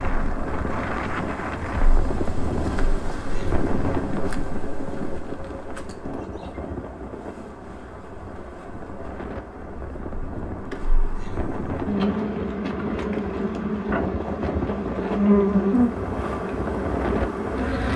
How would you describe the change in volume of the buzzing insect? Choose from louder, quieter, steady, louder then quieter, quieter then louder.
quieter then louder.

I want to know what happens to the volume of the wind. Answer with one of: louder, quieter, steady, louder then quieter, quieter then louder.
quieter then louder.